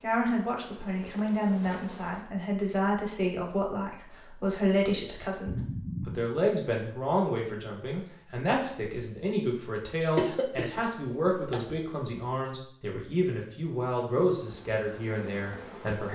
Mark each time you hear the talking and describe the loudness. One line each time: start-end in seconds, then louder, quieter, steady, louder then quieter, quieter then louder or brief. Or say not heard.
0.0-16.1 steady.